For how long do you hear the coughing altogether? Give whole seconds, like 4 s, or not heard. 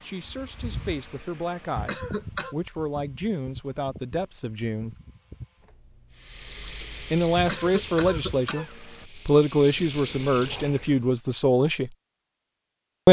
2 s.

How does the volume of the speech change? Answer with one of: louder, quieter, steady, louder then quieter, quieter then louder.
louder.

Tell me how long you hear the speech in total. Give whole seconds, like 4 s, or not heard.
10 s.